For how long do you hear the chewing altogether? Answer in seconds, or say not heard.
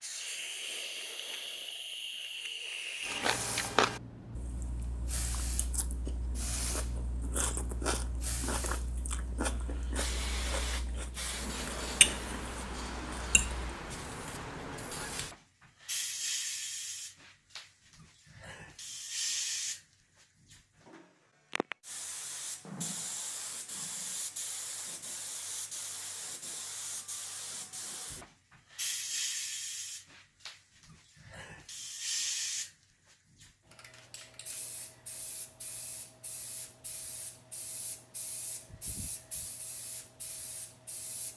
11 s.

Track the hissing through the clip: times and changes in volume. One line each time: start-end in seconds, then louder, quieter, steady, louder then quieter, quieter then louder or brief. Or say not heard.
0.0-41.3 quieter.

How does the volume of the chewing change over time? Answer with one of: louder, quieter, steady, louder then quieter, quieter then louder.
quieter then louder.